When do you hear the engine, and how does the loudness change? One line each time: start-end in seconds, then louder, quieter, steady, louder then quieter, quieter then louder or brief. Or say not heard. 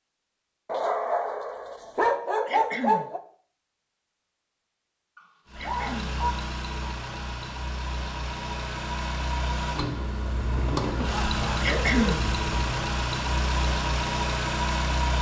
5.5-15.1 louder.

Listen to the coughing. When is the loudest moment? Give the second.
12 s.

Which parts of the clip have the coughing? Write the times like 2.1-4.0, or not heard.
2.5-3.1, 5.5-6.1, 11.6-12.2.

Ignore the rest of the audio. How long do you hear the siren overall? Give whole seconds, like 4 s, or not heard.
not heard.